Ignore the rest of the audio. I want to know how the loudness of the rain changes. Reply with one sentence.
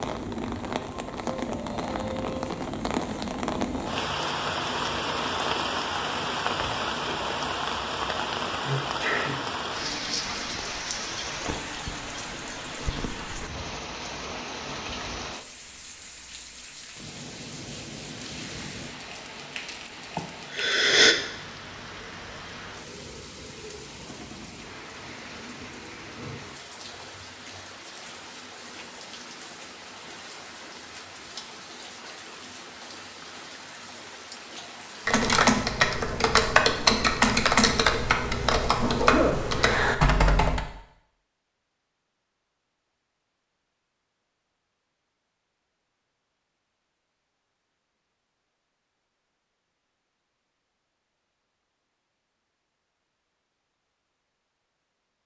The volume of the rain goes down.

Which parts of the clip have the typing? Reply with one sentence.
The typing can be heard from 35.0 to 40.6 s.